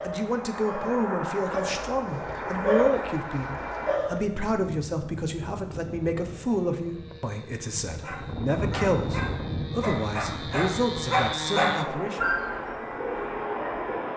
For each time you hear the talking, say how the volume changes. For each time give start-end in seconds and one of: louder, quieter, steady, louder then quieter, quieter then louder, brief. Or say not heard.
0.0-12.2 steady.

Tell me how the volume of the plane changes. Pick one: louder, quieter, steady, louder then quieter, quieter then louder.
quieter then louder.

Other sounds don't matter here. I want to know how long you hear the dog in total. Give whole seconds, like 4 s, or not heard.
10 s.